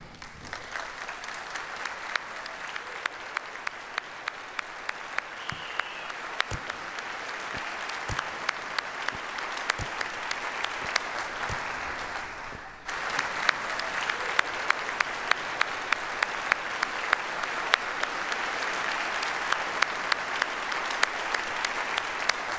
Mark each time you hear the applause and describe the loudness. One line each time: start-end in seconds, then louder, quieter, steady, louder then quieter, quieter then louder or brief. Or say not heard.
0.0-22.5 louder.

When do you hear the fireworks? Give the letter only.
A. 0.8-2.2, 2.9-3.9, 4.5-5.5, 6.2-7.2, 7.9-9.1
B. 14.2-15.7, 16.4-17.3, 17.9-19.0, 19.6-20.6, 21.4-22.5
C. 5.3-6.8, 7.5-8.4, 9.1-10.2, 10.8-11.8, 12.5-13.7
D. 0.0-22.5
C.